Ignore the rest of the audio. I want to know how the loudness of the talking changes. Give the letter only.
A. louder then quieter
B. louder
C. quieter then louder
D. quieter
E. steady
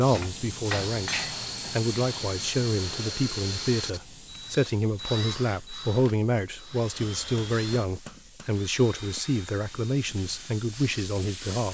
E.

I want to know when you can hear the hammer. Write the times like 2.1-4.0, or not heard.
0.1-1.8, 7.0-8.5.